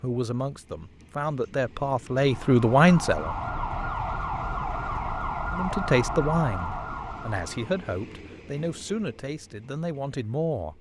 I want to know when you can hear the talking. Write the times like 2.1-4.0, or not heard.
0.0-3.4, 5.5-10.7.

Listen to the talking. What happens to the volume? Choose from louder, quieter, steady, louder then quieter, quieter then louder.
louder then quieter.